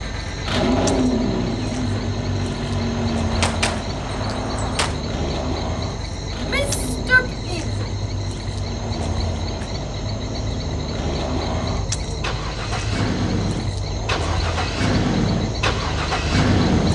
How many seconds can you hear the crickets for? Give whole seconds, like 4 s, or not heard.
17 s.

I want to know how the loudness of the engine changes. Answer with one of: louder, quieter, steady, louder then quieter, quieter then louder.
quieter then louder.